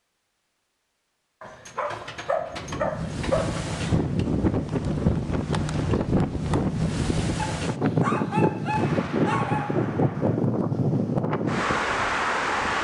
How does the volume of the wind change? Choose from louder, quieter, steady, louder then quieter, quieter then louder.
steady.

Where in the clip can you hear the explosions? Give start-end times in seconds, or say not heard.
8.7-10.3.